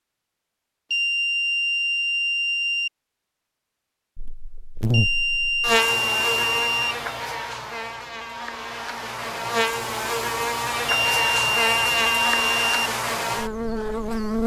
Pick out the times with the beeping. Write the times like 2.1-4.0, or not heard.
0.9-2.9, 4.9-7.0, 10.8-12.8.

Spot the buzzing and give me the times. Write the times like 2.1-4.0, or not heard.
4.2-14.4.